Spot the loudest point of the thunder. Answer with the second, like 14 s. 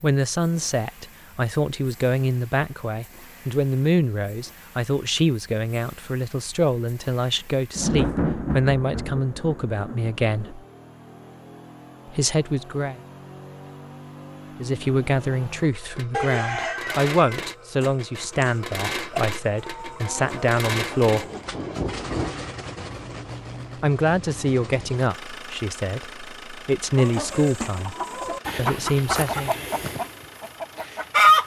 8 s.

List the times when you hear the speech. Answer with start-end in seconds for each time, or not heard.
0.0-10.6, 12.1-13.0, 14.6-21.2, 23.8-27.9, 28.6-29.6.